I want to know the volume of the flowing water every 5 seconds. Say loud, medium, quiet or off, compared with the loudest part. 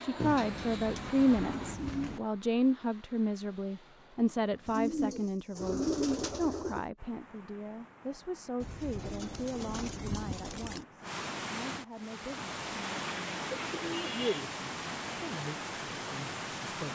off, quiet, loud, loud.